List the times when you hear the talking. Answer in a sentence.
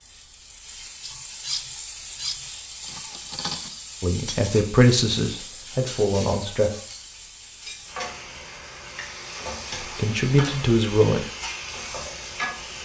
You can hear the talking from 4.0 to 6.7 s and from 9.8 to 11.2 s.